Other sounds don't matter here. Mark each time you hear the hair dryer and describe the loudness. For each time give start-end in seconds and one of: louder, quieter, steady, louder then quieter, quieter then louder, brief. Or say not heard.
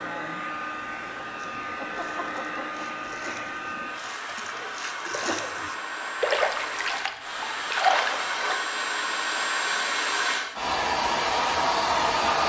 0.0-12.4 louder.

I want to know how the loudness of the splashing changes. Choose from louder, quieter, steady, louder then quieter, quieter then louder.
louder.